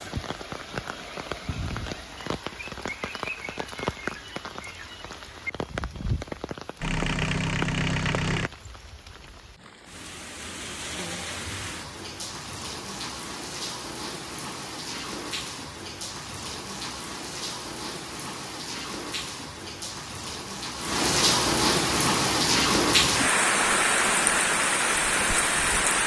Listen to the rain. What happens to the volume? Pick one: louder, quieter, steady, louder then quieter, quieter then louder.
louder.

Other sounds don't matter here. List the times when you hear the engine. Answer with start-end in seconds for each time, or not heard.
6.8-8.5.